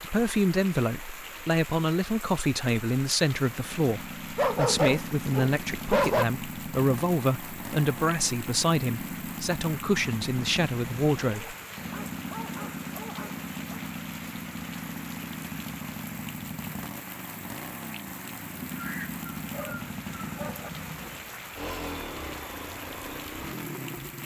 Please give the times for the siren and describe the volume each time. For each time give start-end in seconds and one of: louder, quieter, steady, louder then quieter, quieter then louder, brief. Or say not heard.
not heard.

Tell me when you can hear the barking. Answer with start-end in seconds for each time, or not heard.
4.3-6.2, 11.3-13.8, 18.7-20.7.